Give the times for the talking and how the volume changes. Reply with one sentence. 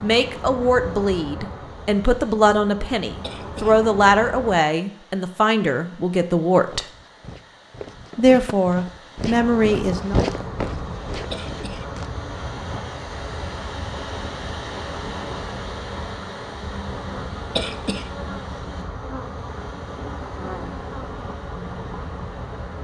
You can hear the talking from 0.0 to 6.8 s, at a steady volume; and briefly from 8.2 to 10.2 s.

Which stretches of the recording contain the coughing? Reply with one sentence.
The coughing can be heard from 3.2 to 3.8 s, from 11.3 to 11.9 s and from 17.6 to 18.1 s.